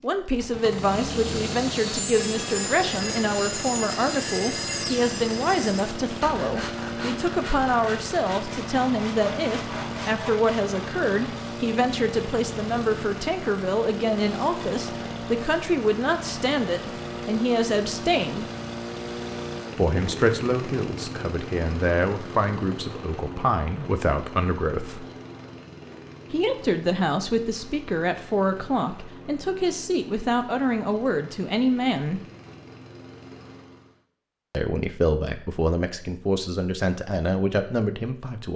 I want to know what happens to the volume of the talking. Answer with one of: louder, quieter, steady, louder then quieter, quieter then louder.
steady.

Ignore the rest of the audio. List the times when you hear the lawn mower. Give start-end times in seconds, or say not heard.
0.0-34.0.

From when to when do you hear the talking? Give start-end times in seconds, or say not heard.
0.0-18.4, 19.8-25.1, 26.3-32.2, 34.5-38.5.